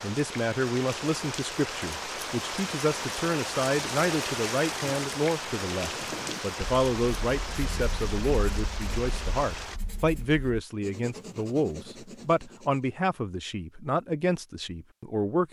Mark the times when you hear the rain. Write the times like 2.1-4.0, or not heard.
0.0-9.8.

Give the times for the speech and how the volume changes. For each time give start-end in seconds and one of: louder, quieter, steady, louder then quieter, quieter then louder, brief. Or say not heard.
0.0-15.4 steady.